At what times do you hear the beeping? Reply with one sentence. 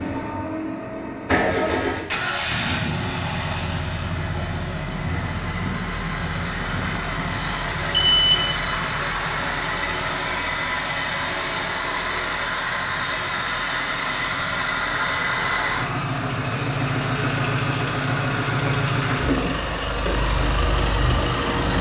You can hear the beeping from 7.9 to 8.7 s.